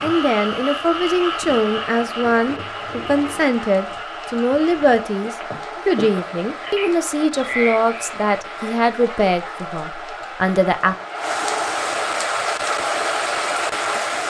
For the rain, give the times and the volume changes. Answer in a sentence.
The rain can be heard from 0.0 to 14.2 s, getting louder.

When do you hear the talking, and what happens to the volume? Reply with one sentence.
You can hear the talking from 0.0 to 10.9 s, at a steady volume.